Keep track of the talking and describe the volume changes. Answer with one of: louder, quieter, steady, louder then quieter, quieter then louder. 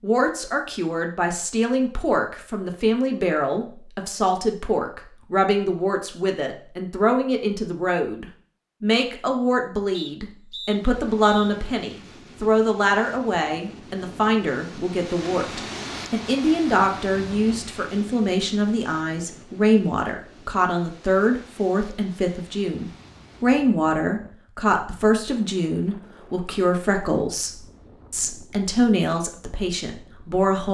steady.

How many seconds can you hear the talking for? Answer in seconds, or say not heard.
31 s.